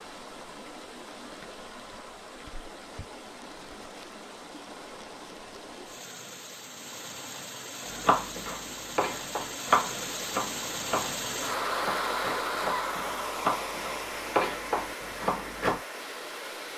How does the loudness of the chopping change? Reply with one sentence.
The loudness of the chopping goes down, then up.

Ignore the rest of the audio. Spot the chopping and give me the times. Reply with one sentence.
The chopping can be heard from 8.0 to 15.8 s.